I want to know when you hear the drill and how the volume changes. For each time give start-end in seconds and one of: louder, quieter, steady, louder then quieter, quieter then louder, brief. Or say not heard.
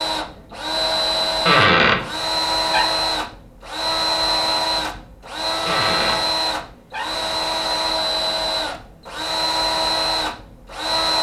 0.0-11.1 steady.